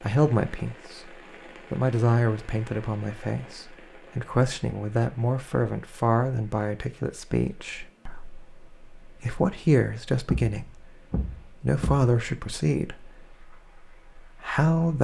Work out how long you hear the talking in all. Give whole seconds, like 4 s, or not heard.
15 s.